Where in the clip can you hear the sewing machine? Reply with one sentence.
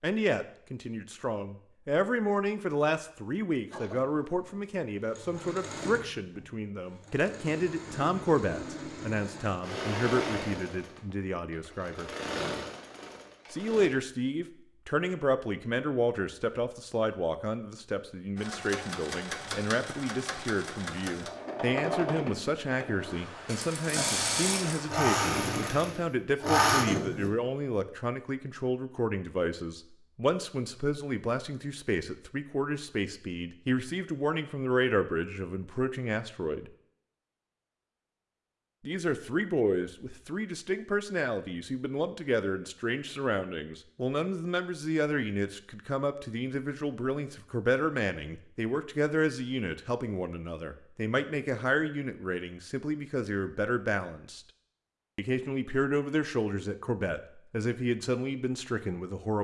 You can hear the sewing machine from 3.7 to 13.9 s and from 18.4 to 27.3 s.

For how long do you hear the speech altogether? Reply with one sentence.
You can hear the speech for 55 seconds altogether.